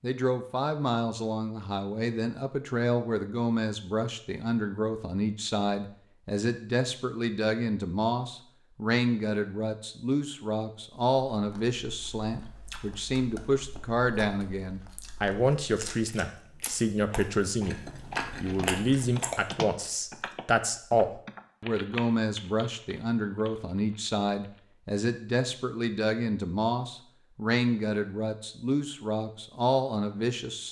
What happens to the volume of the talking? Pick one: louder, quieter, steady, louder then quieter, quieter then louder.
steady.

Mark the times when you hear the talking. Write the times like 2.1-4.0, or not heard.
0.0-17.8, 18.4-30.6.